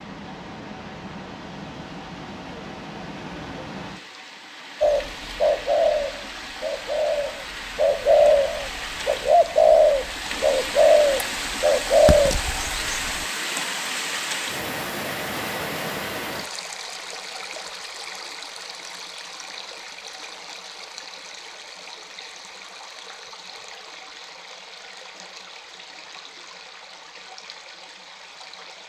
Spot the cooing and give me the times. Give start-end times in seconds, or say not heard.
4.8-13.2.